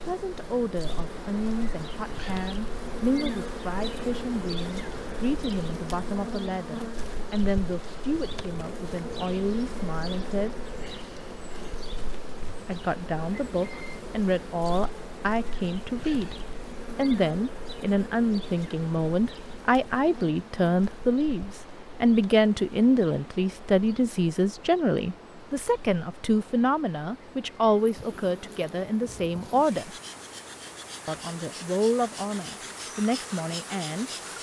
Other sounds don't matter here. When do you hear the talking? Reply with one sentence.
You can hear the talking from 0.1 to 10.6 s, from 12.7 to 16.4 s, from 16.9 to 29.9 s and from 31.1 to 34.1 s.